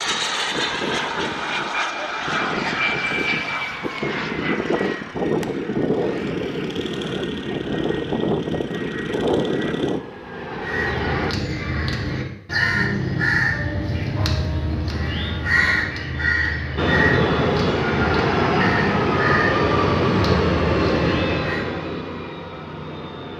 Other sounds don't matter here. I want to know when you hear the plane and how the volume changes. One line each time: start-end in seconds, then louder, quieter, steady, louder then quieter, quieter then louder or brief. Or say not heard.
0.0-11.3 steady
16.8-23.3 quieter.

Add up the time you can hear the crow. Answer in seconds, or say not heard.
11 s.